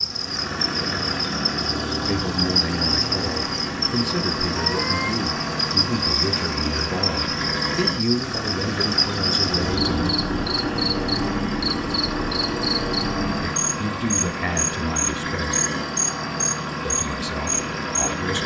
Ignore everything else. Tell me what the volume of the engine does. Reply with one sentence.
The loudness of the engine stays about the same.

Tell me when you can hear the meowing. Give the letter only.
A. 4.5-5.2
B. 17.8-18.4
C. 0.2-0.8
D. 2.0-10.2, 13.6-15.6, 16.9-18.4
A.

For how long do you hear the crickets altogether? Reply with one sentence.
The crickets can be heard for 18 seconds in total.